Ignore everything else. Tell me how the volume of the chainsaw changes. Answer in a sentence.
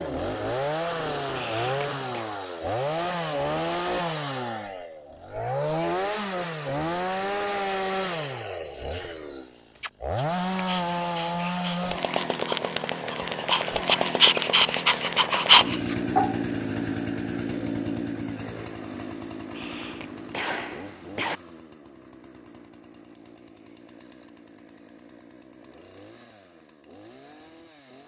The loudness of the chainsaw goes down.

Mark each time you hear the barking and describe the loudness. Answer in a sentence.
You can hear the barking from 9.8 to 16.4 s, getting louder.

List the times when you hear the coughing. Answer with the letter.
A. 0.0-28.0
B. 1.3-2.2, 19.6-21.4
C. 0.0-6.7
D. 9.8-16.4
B.